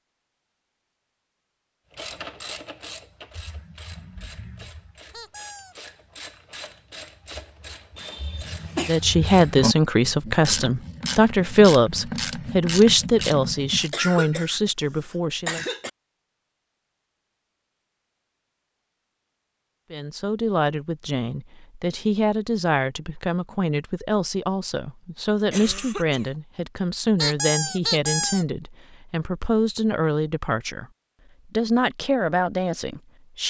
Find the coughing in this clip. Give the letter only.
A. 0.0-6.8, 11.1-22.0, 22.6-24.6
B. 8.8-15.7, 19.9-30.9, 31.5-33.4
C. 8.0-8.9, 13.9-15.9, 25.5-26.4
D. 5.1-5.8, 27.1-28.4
C.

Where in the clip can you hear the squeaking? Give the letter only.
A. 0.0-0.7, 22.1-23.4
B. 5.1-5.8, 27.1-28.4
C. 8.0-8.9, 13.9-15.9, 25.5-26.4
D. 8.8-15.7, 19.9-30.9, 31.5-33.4
B.